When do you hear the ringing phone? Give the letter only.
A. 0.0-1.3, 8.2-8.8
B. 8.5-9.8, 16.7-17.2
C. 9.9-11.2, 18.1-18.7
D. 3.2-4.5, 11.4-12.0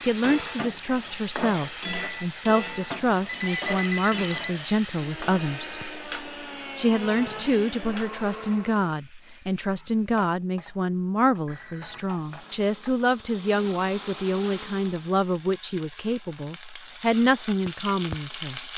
D.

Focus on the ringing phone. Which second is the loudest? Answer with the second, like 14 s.
4 s.